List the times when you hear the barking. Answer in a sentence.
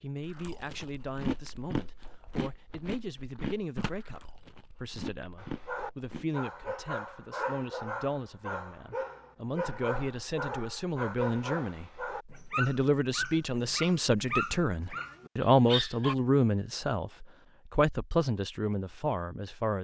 The barking can be heard from 5.3 to 16.1 s.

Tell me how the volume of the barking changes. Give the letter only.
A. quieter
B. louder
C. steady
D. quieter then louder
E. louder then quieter
C.